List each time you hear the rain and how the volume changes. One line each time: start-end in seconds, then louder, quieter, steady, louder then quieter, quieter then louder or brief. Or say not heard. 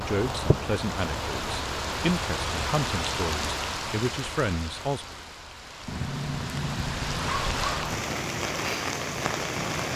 0.0-9.9 quieter then louder.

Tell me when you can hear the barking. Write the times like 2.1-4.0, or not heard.
5.8-8.1.